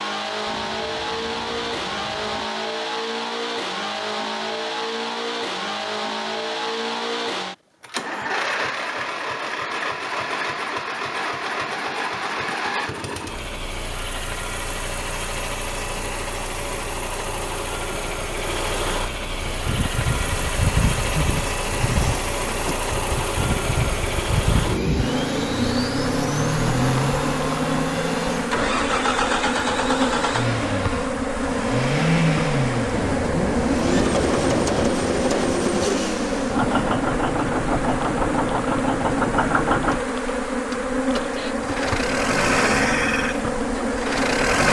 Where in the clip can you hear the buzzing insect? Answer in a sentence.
The buzzing insect can be heard from 19.4 to 44.6 s.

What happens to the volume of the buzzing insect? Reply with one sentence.
The loudness of the buzzing insect stays about the same.